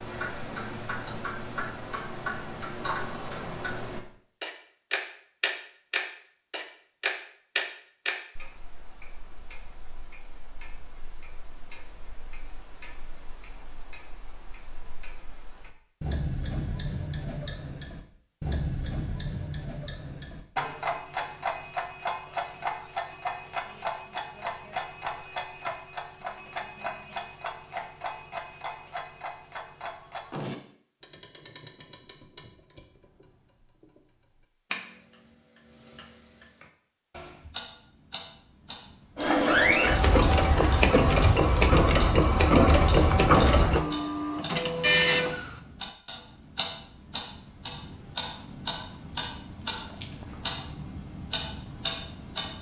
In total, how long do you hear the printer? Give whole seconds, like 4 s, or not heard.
6 s.